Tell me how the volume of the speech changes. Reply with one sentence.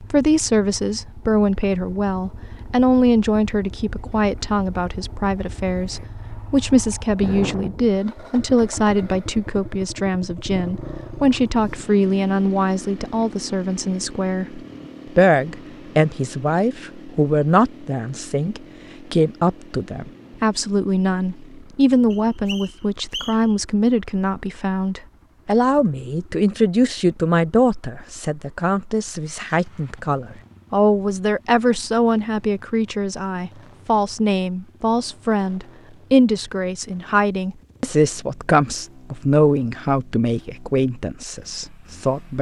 The volume of the speech stays about the same.